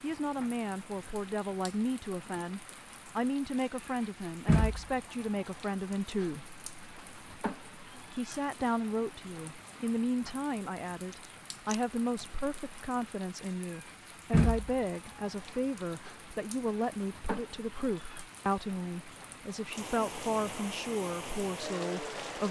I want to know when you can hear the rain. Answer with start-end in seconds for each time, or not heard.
0.0-22.4.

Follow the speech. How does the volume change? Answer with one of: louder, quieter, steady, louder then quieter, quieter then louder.
steady.